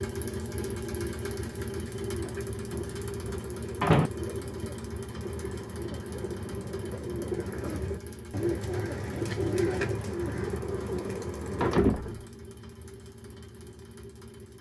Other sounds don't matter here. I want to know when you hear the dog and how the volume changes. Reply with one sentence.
The dog can't be heard in this clip.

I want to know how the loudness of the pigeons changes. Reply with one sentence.
The volume of the pigeons goes up.